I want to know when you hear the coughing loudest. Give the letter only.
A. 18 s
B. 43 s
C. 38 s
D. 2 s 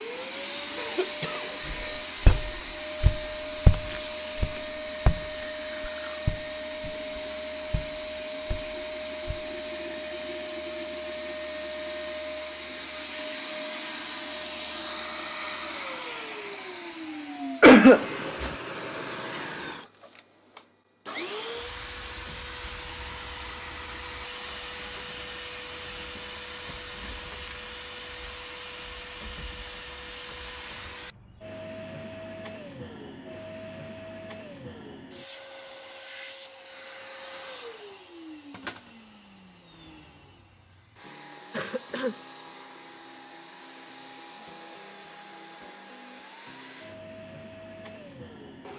A.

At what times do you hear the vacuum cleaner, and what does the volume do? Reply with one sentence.
You can hear the vacuum cleaner from 0.0 to 48.7 s, getting quieter.